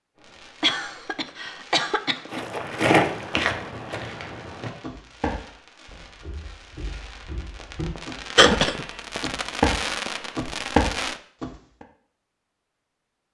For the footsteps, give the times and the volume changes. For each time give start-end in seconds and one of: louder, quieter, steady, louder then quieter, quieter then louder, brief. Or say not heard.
2.3-11.8 quieter then louder.